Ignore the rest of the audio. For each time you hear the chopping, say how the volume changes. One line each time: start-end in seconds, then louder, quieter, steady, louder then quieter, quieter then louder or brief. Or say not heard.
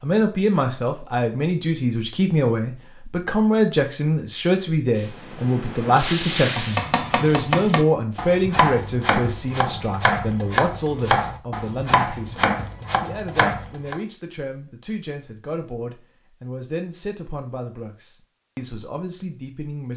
6.3-13.9 steady.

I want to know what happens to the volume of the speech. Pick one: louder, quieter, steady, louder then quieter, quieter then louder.
quieter.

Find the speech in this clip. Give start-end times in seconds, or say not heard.
0.0-19.9.